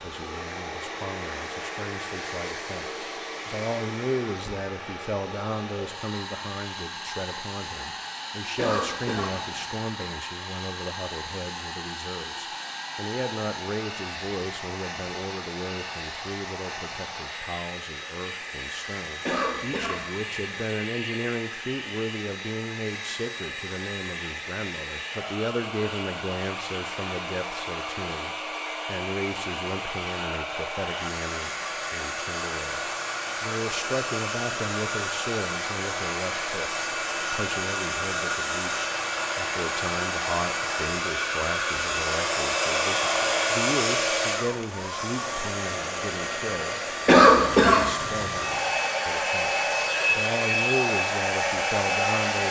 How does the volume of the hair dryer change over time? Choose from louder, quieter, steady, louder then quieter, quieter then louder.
louder.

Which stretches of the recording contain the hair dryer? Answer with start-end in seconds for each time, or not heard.
0.0-52.4.